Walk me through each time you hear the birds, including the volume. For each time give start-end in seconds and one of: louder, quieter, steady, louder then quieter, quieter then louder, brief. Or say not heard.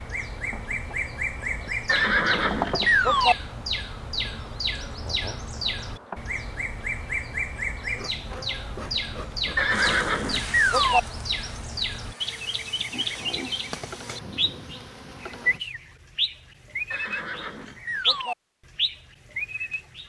0.0-20.0 steady.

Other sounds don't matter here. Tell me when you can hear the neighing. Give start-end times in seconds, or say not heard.
1.9-3.4, 9.6-11.0, 16.9-18.4.